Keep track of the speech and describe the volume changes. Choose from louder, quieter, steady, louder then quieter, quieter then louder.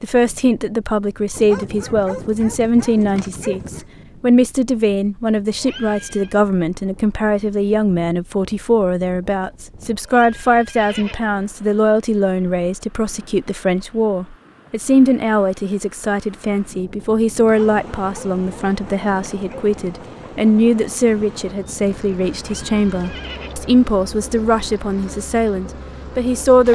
steady.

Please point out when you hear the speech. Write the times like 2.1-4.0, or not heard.
0.0-26.7.